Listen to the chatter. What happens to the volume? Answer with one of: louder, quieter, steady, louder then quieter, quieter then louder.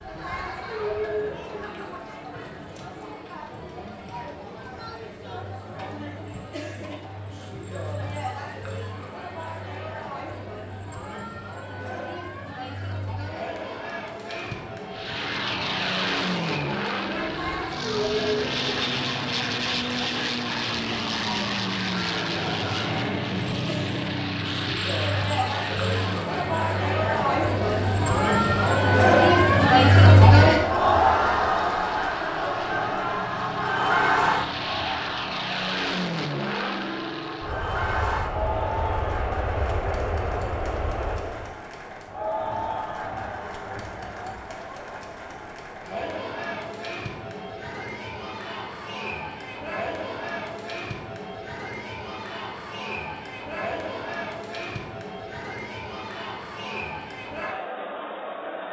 louder then quieter.